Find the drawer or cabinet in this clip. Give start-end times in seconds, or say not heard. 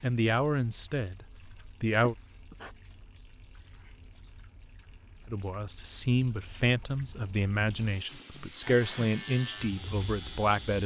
not heard.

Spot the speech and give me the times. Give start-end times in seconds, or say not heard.
0.0-2.1, 5.3-10.8.